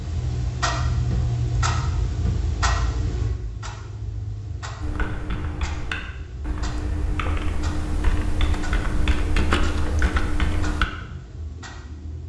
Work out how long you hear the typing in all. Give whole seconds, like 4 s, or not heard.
6 s.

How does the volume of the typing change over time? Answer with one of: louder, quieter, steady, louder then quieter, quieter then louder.
louder.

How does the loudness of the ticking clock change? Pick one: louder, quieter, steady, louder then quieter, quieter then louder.
quieter.